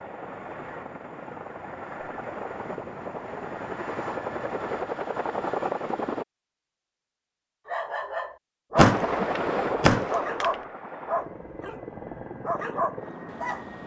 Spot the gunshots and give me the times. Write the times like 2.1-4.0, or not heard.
8.8-10.6.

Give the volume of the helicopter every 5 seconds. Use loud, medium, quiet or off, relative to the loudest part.
medium, loud, medium.